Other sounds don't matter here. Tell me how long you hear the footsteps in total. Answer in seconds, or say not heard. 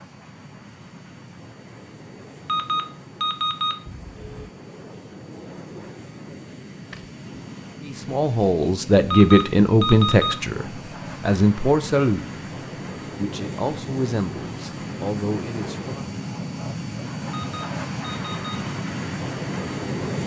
not heard.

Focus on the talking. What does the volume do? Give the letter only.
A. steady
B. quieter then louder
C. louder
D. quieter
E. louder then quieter
D.